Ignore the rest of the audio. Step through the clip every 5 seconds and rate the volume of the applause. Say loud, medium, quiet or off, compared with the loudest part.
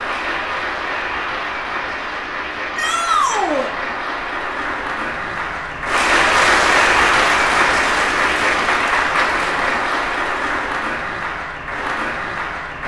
medium, loud, medium.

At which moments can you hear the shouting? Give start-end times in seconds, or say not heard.
2.8-3.7.